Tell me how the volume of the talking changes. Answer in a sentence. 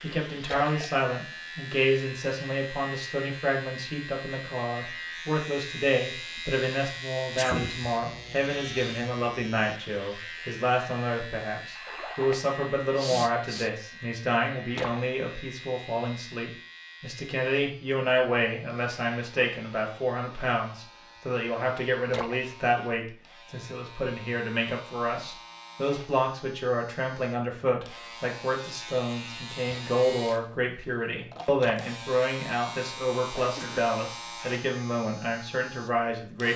The loudness of the talking stays about the same.